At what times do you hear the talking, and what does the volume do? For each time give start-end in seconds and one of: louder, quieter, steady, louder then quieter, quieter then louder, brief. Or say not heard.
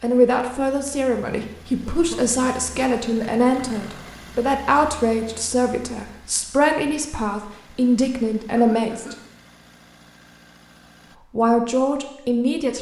0.0-9.2 steady
11.3-12.7 brief.